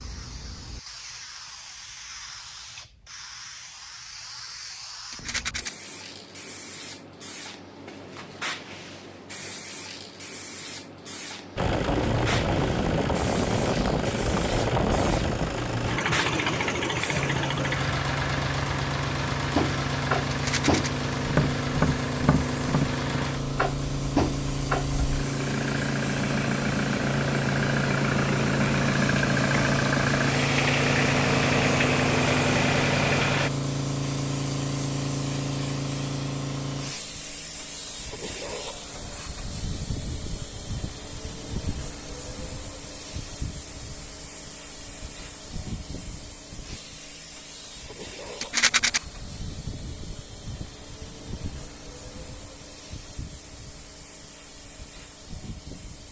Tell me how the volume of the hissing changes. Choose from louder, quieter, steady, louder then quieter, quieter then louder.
louder then quieter.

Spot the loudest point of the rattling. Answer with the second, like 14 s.
49 s.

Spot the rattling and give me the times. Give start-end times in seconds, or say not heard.
5.1-5.7, 20.3-20.9, 48.4-49.0.